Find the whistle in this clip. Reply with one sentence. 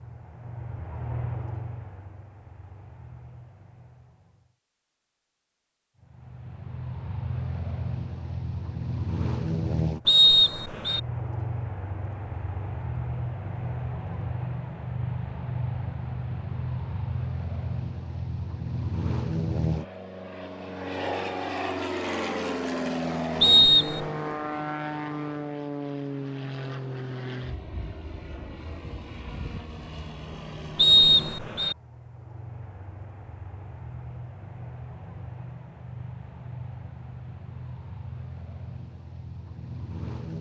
The whistle can be heard from 10.1 to 11.0 s, from 23.4 to 24.1 s and from 30.8 to 31.8 s.